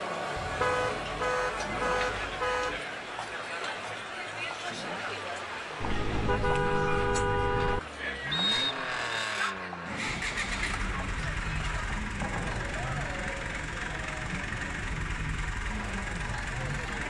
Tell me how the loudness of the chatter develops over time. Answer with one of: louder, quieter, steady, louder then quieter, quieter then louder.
quieter.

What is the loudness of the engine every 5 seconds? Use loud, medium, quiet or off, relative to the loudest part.
medium, loud, loud, loud.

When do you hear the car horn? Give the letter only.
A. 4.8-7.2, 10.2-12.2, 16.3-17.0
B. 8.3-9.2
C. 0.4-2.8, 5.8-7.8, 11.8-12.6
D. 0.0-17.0
C.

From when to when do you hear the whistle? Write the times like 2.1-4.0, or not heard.
8.3-9.2.